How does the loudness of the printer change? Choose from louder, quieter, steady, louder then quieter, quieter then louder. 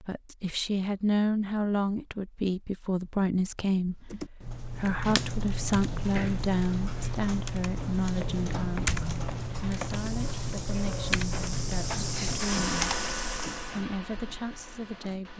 louder then quieter.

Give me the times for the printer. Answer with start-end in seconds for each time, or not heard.
10.1-15.3.